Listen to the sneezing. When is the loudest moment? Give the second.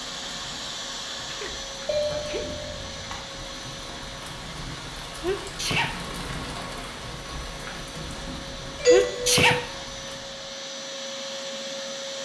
9 s.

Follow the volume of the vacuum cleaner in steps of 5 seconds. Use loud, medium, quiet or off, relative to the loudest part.
loud, medium, loud.